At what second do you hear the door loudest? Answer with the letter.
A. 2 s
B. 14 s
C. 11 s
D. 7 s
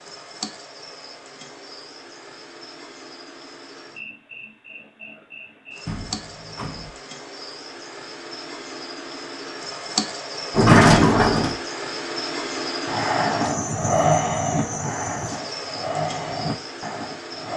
C.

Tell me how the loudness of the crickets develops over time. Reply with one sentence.
The volume of the crickets goes up.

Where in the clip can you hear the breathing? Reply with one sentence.
You can hear the breathing from 12.8 to 17.5 s.